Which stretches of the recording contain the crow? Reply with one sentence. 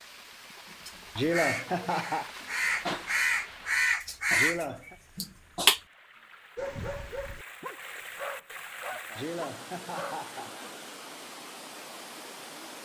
The crow can be heard from 0.8 to 5.8 s.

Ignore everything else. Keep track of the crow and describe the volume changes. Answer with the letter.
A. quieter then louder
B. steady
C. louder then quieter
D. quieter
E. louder
C.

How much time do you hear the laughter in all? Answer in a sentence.
You can hear the laughter for 3 seconds altogether.